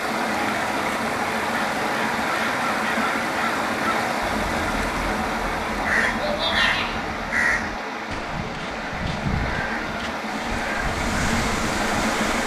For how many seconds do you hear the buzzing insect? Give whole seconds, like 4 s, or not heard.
2 s.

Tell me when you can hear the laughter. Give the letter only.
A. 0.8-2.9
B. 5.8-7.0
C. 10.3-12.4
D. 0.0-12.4
B.